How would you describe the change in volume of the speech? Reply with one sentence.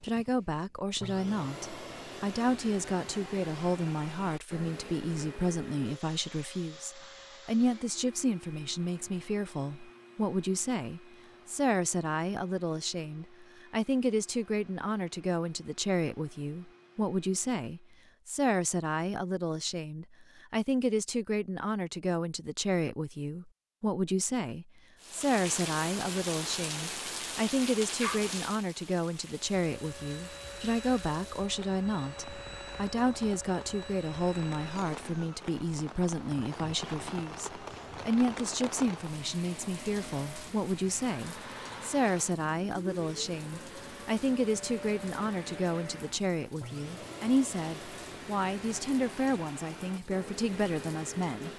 The loudness of the speech stays about the same.